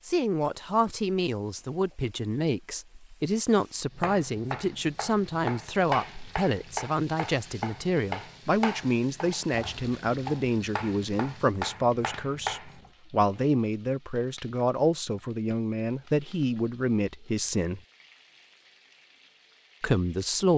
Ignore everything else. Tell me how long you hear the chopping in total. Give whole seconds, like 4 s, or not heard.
9 s.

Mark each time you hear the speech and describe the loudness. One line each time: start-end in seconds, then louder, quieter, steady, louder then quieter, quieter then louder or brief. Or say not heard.
0.1-17.8 steady
19.8-20.5 brief.